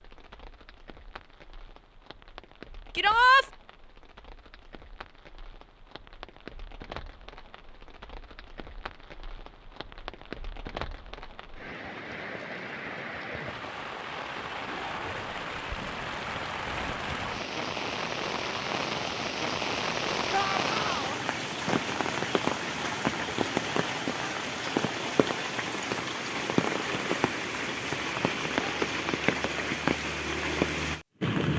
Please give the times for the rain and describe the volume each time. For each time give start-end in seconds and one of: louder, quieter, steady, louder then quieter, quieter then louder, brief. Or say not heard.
0.0-31.5 louder.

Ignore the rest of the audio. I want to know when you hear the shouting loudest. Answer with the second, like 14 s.
3 s.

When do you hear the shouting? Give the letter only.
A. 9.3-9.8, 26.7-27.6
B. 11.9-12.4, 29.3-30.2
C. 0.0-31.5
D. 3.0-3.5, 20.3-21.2
D.